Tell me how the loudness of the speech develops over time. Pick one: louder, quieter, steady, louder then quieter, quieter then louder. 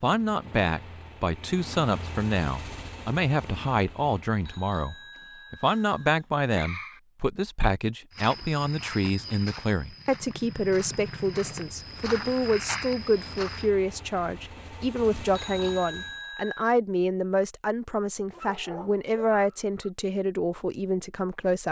steady.